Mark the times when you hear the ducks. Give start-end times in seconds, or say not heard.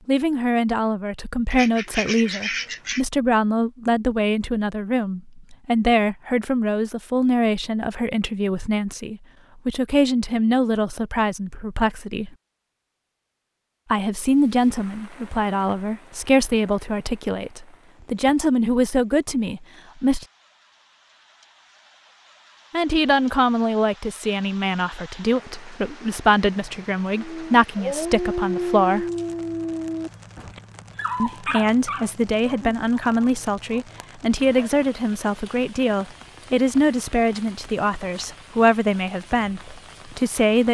1.5-3.0.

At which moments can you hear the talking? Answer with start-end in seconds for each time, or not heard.
0.1-12.3, 13.9-20.2, 22.7-29.1, 31.2-40.6.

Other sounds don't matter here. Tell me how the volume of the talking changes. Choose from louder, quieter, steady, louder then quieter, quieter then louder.
steady.